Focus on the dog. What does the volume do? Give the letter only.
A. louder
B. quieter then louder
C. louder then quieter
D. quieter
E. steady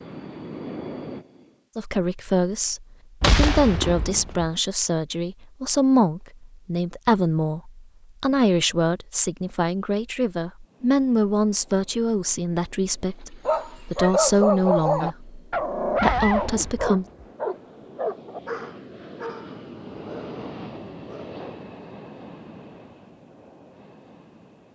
D.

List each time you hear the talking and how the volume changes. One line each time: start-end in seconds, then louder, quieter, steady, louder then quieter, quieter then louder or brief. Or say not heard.
1.8-17.1 steady.